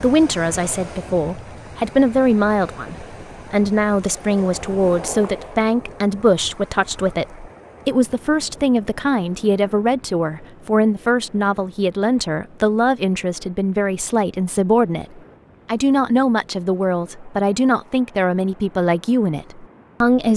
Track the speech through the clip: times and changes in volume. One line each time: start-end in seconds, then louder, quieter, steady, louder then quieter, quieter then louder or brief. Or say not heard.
0.0-20.3 steady.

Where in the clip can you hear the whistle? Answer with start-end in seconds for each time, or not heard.
not heard.